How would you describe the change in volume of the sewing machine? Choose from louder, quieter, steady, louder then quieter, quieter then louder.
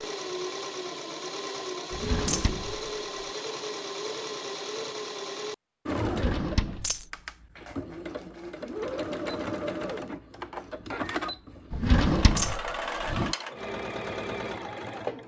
steady.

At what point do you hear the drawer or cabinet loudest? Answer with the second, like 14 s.
12 s.